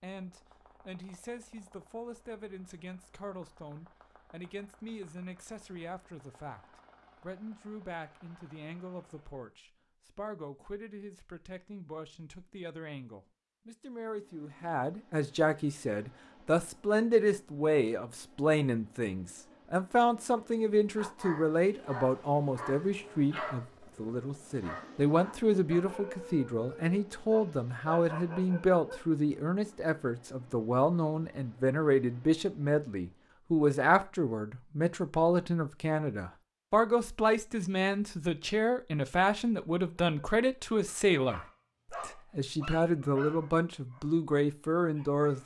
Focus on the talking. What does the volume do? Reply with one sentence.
The loudness of the talking goes up.